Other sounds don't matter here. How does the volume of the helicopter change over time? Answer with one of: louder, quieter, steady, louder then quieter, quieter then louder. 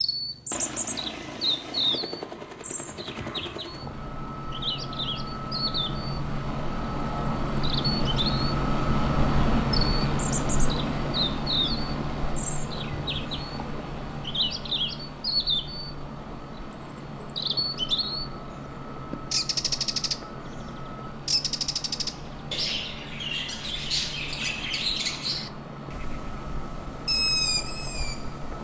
louder then quieter.